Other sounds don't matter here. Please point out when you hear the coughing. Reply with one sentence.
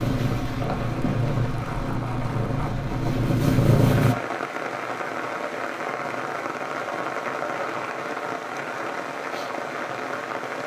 The coughing can't be heard in this clip.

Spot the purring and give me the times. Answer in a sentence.
The purring can be heard from 0.0 to 4.2 s.